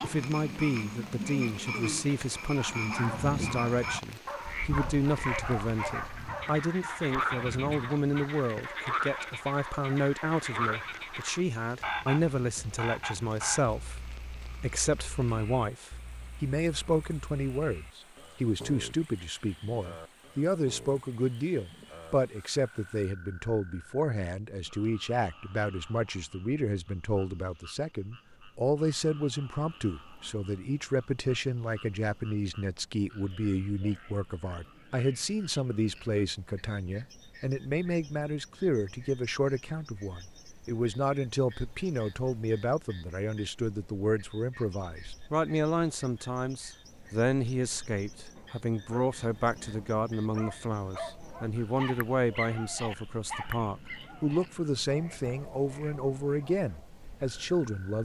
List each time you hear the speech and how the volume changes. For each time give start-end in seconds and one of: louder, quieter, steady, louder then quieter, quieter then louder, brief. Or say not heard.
0.0-58.0 steady.